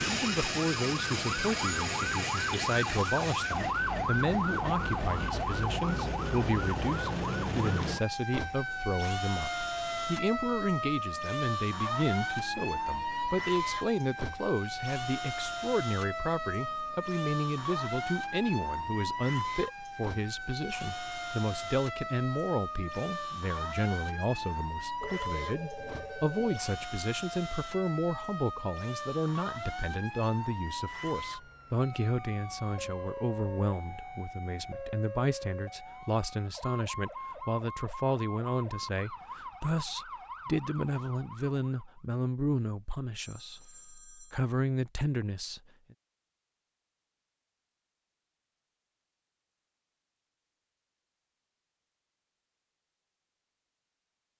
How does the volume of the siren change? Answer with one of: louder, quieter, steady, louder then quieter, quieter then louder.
quieter.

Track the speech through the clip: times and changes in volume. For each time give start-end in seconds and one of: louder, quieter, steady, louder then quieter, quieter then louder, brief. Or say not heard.
0.0-45.6 steady.